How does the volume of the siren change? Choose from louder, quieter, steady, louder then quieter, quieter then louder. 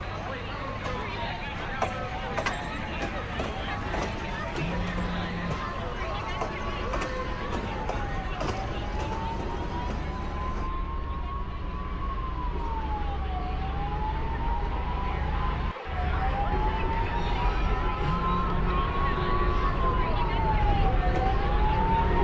louder.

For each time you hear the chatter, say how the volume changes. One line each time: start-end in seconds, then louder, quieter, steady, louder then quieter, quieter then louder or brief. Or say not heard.
0.0-22.1 quieter then louder.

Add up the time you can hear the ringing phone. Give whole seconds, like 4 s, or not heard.
2 s.